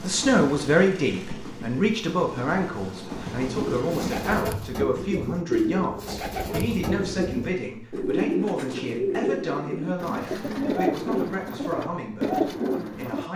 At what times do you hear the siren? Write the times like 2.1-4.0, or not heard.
not heard.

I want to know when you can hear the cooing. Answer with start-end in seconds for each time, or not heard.
3.6-13.3.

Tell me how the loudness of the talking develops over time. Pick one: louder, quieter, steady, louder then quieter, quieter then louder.
quieter.